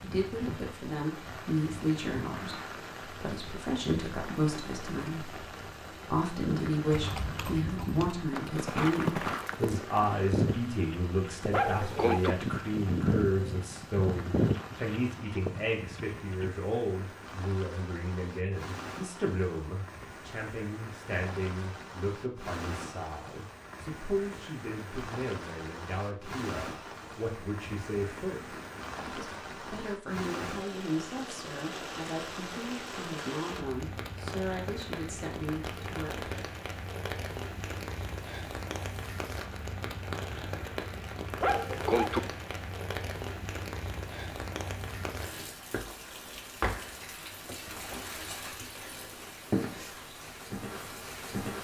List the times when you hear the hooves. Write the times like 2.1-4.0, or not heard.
6.9-16.5.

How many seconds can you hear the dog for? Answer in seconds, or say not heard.
2 s.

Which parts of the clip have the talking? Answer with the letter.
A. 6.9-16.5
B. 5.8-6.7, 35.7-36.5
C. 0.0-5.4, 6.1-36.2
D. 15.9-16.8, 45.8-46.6
C.